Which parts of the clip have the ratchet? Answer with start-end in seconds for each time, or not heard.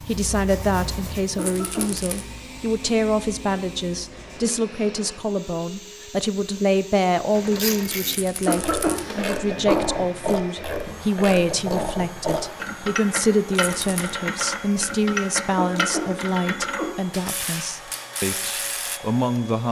7.3-19.0.